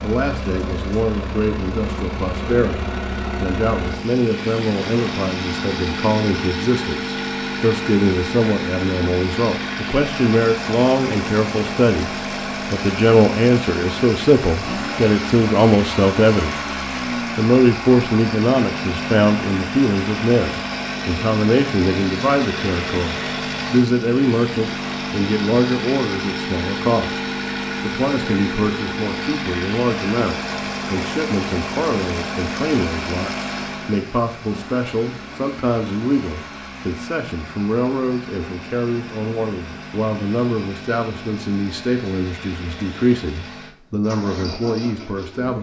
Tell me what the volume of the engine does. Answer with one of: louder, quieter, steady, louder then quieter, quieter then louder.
quieter.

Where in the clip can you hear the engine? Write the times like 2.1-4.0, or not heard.
0.0-45.5.